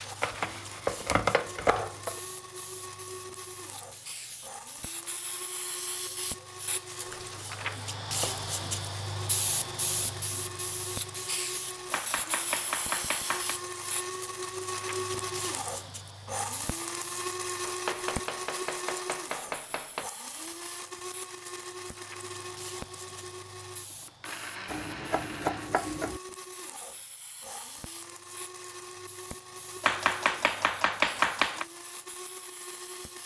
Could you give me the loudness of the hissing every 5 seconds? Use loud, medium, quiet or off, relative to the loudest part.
medium, loud, loud, medium, quiet, quiet, quiet.